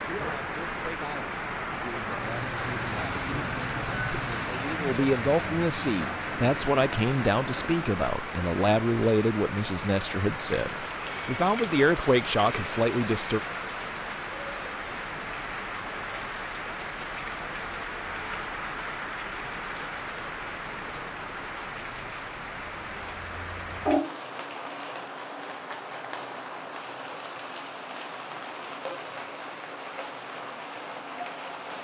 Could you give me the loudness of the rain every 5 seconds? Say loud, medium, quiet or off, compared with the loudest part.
loud, loud, loud, loud, loud, medium, medium.